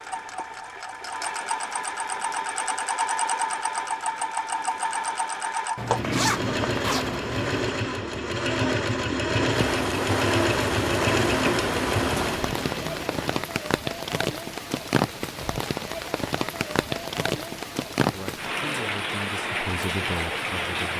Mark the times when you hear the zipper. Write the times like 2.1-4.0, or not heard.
5.8-7.7.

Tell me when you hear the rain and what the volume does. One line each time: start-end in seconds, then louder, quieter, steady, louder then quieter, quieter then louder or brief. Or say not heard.
9.5-20.9 steady.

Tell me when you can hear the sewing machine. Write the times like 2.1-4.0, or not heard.
0.0-13.4.